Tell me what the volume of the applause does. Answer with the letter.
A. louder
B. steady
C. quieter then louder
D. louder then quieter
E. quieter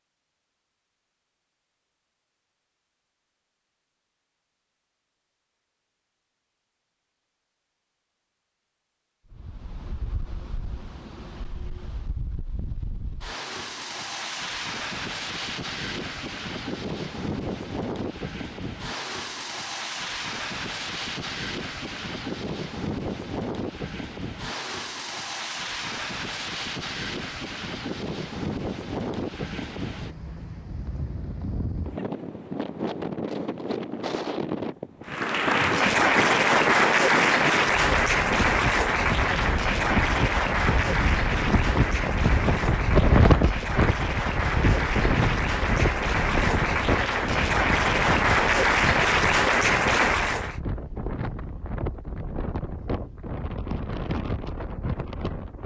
C.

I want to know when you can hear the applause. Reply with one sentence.
The applause can be heard from 35.0 to 50.6 s.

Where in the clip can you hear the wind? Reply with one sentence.
You can hear the wind from 9.3 to 55.6 s.